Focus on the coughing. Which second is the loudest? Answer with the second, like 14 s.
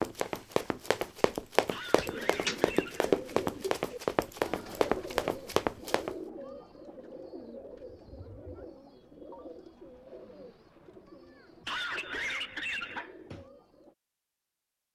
12 s.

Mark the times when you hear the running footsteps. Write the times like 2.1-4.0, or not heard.
0.0-6.2.